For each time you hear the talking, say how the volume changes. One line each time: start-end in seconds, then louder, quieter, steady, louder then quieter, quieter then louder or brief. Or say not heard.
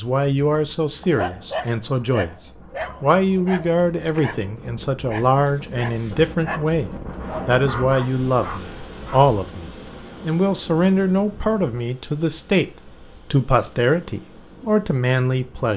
0.0-2.4 brief
3.0-15.7 steady.